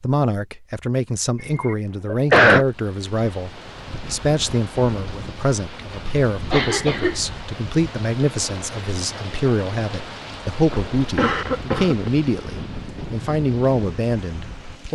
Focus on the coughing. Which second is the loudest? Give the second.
2 s.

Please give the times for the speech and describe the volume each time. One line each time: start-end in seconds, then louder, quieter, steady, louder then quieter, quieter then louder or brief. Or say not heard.
0.0-14.8 steady.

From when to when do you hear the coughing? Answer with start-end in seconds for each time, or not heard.
1.4-2.6, 6.5-7.2, 10.7-12.1.